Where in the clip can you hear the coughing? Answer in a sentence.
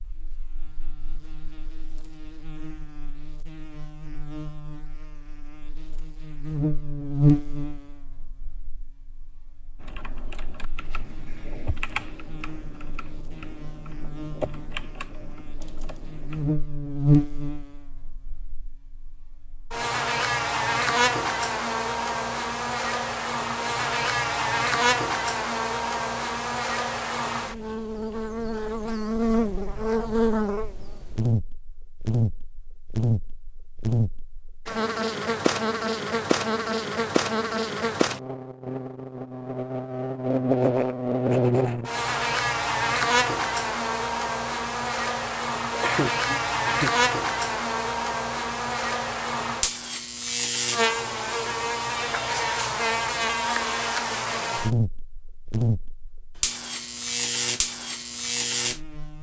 The coughing can be heard from 45.7 to 46.9 s.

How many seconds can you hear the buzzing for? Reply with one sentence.
The buzzing can be heard for 59 seconds in total.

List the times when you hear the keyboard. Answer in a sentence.
The keyboard can be heard from 9.8 to 16.6 s.